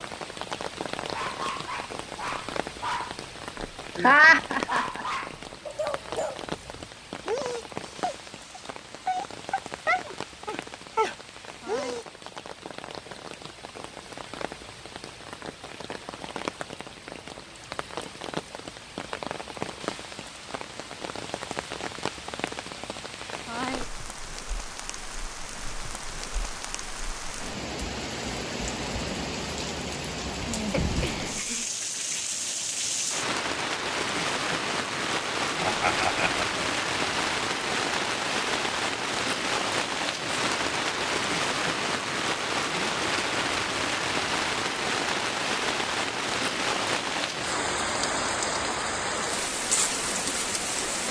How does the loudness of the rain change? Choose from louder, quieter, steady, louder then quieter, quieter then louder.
louder.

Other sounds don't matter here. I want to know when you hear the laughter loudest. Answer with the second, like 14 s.
4 s.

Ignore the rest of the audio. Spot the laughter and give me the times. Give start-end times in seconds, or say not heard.
4.0-5.0, 30.7-31.6, 35.6-36.6.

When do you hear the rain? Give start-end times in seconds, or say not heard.
0.0-51.0.